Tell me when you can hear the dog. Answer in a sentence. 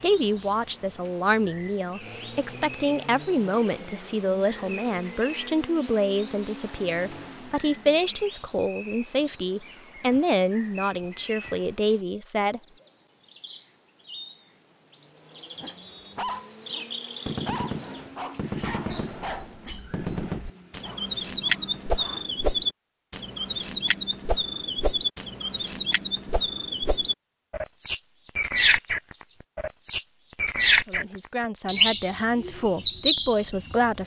The dog can be heard from 15.6 to 22.4 s.